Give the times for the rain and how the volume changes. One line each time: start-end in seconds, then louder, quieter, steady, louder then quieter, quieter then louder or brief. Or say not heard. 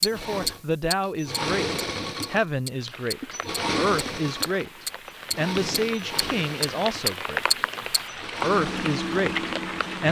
2.7-10.0 louder.